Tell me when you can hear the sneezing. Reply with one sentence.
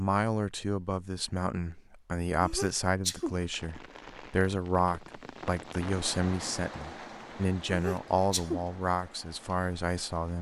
The sneezing can be heard from 2.4 to 3.4 s and from 7.7 to 8.7 s.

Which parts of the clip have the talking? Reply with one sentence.
The talking can be heard from 0.0 to 10.3 s.